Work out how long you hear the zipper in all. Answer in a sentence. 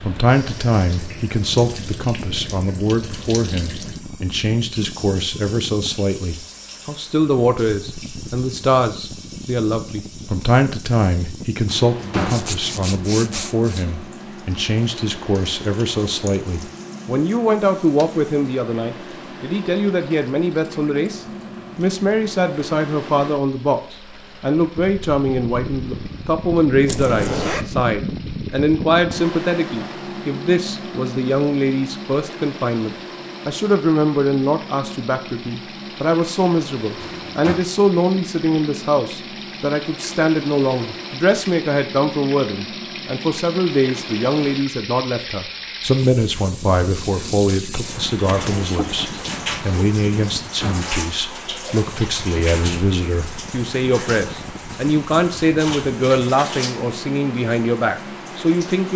The zipper can be heard for 4 seconds in total.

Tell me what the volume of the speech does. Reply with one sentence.
The loudness of the speech stays about the same.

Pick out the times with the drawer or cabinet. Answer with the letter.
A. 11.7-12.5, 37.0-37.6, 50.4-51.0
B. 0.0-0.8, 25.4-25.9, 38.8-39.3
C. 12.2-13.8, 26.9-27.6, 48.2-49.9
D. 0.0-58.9
A.